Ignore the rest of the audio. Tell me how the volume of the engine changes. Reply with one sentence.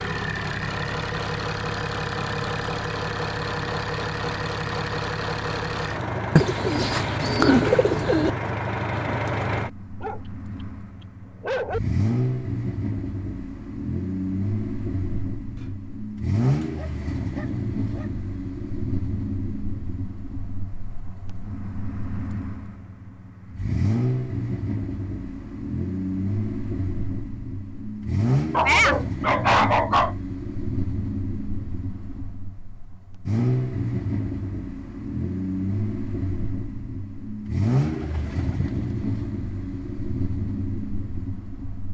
The loudness of the engine stays about the same.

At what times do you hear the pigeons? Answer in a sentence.
You can hear the pigeons from 6.3 to 8.3 s and from 37.8 to 39.0 s.